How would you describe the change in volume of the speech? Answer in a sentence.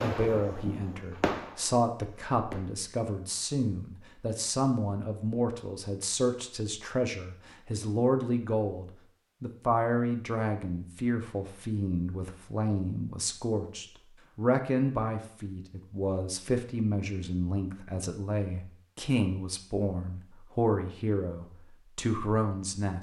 The volume of the speech stays about the same.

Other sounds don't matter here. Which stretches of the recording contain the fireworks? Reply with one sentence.
You can hear the fireworks from 0.0 to 2.6 s.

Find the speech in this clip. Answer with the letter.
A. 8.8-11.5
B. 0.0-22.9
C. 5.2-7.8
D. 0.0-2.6
B.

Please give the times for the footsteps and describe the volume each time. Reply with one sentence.
The footsteps can't be heard in this clip.